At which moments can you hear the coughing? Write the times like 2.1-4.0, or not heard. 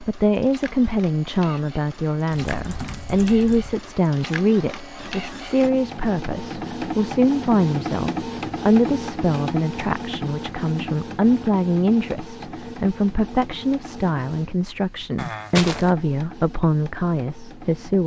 15.2-15.9.